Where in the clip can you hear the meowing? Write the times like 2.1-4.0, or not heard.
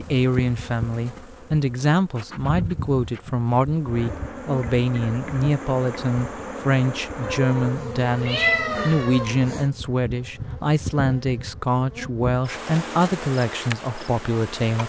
7.2-9.3.